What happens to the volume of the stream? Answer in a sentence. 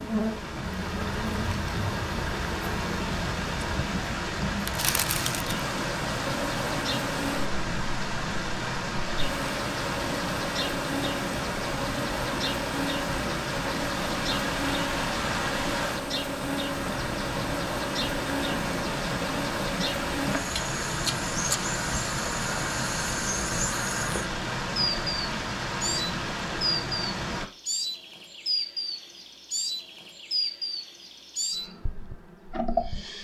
The loudness of the stream stays about the same.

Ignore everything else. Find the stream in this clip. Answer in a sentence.
The stream can be heard from 0.0 to 27.5 s.